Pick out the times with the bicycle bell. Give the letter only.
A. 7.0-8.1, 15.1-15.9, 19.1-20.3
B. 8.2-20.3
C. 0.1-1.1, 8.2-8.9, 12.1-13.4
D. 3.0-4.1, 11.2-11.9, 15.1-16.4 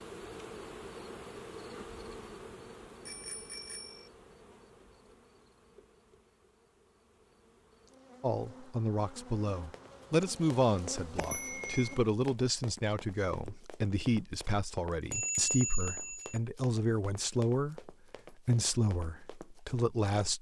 D.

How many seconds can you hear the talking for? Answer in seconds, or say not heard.
12 s.